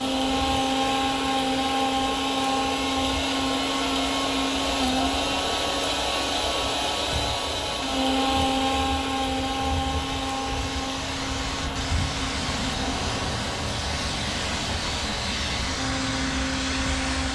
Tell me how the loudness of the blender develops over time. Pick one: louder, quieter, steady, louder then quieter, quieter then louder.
quieter.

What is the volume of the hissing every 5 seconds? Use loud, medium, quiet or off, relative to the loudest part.
medium, medium, loud, loud.